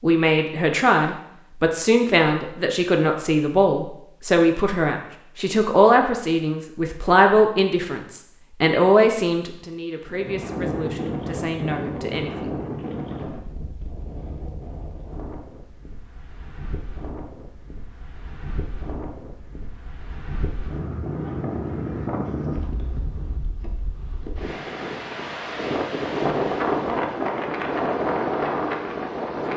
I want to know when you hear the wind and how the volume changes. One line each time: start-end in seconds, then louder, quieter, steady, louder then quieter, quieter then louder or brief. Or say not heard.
10.1-29.5 quieter then louder.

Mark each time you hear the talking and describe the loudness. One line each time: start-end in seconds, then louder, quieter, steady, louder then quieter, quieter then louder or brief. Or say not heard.
0.0-12.6 quieter.